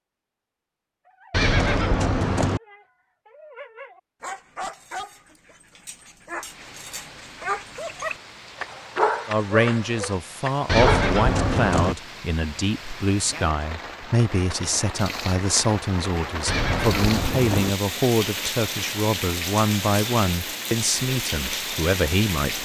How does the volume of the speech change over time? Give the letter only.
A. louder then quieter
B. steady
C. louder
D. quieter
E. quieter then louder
B.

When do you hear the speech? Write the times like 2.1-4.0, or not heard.
9.2-22.5.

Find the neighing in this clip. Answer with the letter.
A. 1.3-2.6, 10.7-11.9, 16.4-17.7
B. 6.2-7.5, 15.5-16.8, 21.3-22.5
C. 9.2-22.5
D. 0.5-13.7
A.